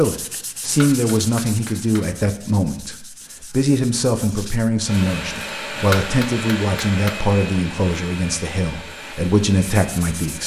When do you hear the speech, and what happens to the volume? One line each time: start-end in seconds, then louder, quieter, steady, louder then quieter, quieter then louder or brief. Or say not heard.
0.0-10.4 steady.